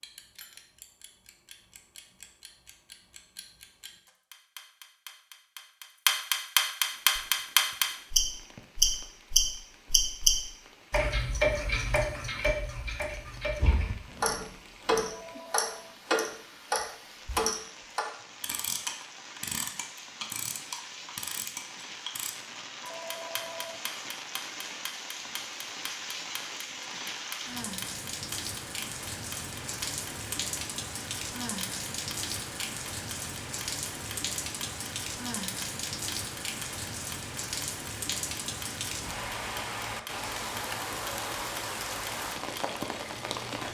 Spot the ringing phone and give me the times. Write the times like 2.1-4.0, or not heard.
15.0-15.9, 22.8-23.8.